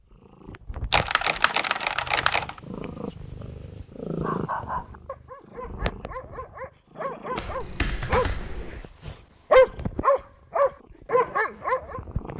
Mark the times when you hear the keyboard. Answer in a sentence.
The keyboard can be heard from 0.9 to 2.6 s and from 7.3 to 8.8 s.